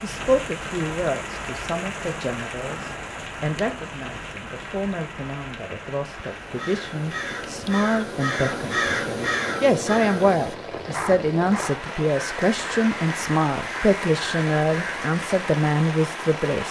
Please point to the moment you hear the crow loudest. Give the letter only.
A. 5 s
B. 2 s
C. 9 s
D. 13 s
C.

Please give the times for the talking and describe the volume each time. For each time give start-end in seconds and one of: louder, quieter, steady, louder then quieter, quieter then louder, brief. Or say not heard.
0.0-16.6 louder.